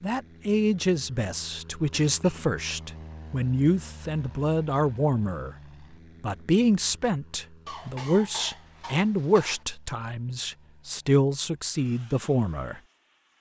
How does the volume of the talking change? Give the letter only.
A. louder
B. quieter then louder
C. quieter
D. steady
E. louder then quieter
D.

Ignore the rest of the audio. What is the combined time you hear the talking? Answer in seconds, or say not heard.
12 s.